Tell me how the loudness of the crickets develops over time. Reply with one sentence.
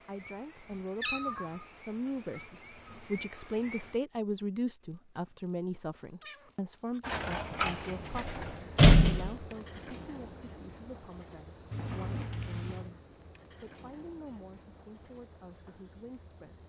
The loudness of the crickets goes up, then down.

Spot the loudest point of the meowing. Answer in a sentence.
The volume of the meowing peaks at 1 second.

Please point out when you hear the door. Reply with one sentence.
The door can be heard from 7.7 to 9.3 s.